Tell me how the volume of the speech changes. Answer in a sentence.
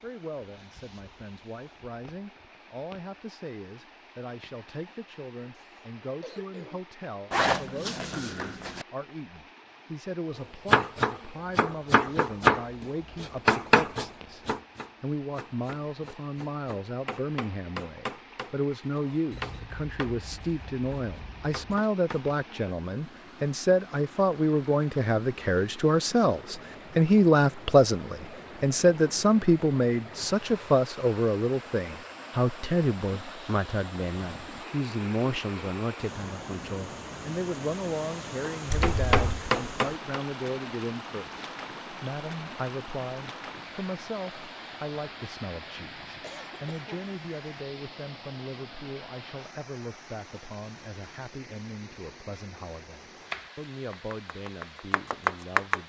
The volume of the speech goes up, then down.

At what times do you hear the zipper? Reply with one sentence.
You can hear the zipper from 7.3 to 8.8 s and from 38.7 to 39.4 s.